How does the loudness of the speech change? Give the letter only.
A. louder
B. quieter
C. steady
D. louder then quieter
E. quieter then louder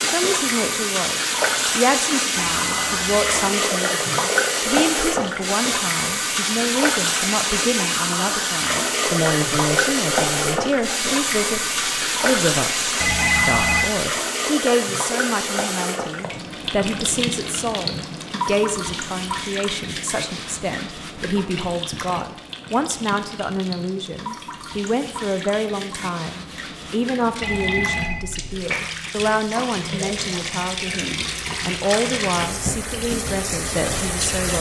C.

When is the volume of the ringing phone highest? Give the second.
13 s.